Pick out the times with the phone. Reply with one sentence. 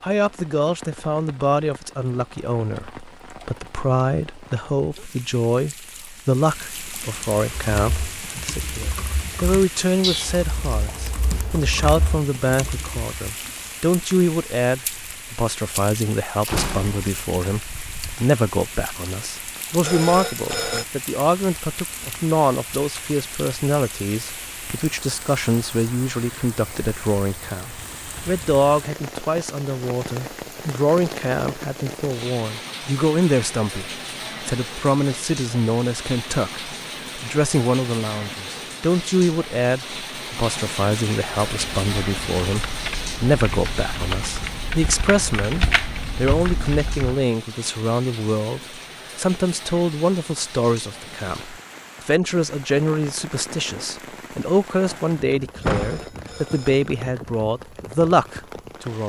You can hear the phone from 19.8 to 20.9 s and from 55.6 to 56.9 s.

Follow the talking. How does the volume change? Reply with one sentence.
The loudness of the talking stays about the same.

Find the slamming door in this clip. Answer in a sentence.
The slamming door can be heard from 16.4 to 17.4 s and from 55.6 to 56.1 s.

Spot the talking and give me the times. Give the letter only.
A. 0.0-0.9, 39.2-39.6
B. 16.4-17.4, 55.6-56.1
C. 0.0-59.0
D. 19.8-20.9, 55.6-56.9
C.